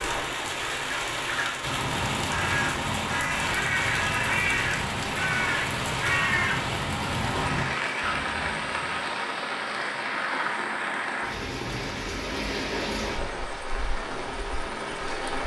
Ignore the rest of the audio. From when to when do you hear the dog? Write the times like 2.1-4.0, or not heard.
not heard.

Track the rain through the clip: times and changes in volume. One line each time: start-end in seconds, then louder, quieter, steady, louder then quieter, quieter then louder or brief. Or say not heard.
0.0-15.4 steady.